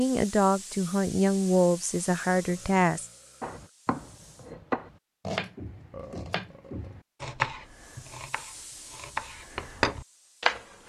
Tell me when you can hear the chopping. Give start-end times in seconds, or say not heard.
3.4-10.8.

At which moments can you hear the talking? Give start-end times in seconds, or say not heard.
0.0-3.0.